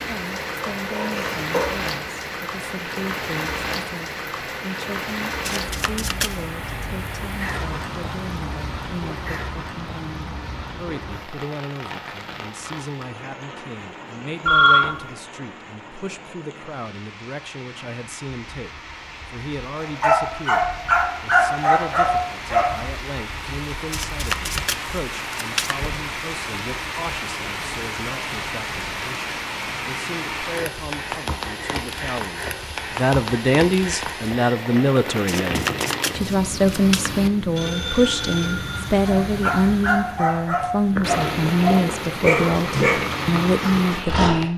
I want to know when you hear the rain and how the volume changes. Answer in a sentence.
The rain can be heard from 0.0 to 44.5 s, getting quieter then louder.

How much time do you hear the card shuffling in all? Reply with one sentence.
The card shuffling can be heard for 5 seconds in total.